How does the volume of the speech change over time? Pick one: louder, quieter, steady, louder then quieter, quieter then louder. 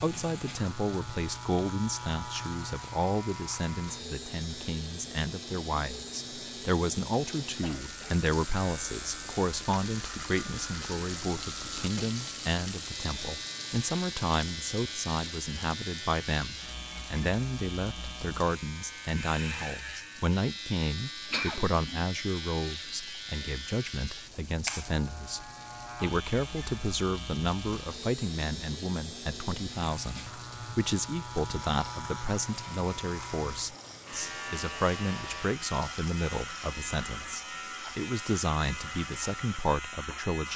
steady.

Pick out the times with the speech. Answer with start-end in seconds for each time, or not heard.
0.0-40.5.